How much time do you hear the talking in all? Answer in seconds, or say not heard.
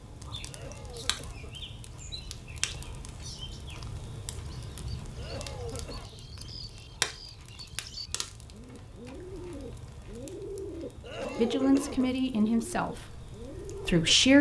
3 s.